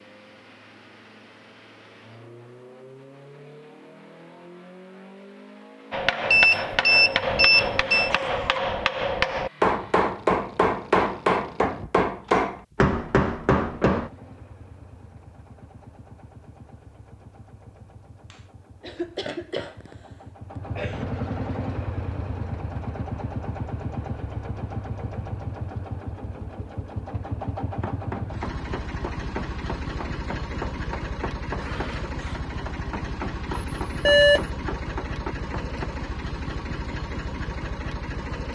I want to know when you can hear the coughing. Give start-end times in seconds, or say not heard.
8.0-8.6, 18.3-21.1, 31.4-32.5.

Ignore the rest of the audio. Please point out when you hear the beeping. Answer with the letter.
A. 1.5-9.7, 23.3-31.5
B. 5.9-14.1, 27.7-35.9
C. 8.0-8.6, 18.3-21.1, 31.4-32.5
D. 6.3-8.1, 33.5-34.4
D.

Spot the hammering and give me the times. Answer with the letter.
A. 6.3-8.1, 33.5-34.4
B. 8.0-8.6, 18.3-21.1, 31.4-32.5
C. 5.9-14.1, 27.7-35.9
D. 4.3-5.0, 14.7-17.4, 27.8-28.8
C.